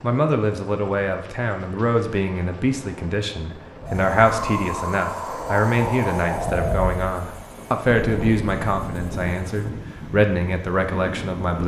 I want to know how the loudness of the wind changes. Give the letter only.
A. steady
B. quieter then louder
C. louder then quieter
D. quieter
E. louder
D.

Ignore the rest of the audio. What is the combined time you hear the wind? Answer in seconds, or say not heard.
8 s.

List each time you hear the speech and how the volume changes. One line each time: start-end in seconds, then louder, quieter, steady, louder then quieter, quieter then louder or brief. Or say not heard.
0.0-11.6 steady.